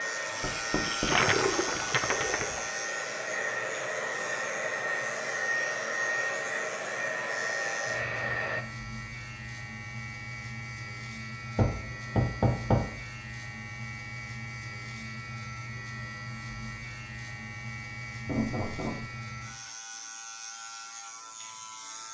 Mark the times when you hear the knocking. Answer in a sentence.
The knocking can be heard from 0.4 to 1.1 s, from 11.6 to 12.9 s and from 18.2 to 19.1 s.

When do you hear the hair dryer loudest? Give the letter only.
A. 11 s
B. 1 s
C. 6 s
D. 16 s
C.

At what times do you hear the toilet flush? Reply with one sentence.
You can hear the toilet flush from 0.1 to 2.7 s.